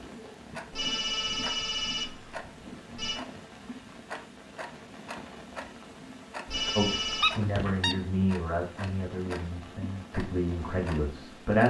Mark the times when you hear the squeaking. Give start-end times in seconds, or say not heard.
6.5-8.0.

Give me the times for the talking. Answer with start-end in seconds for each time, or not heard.
6.8-11.6.